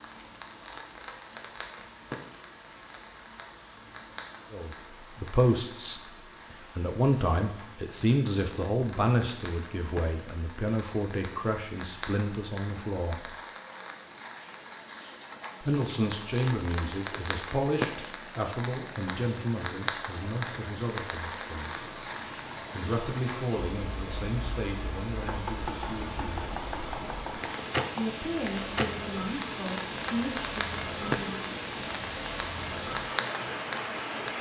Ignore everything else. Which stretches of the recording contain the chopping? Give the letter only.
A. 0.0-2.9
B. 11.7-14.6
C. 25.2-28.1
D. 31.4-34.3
C.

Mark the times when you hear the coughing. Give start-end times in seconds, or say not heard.
not heard.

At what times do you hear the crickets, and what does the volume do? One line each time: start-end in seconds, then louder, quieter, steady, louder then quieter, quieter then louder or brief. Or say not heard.
not heard.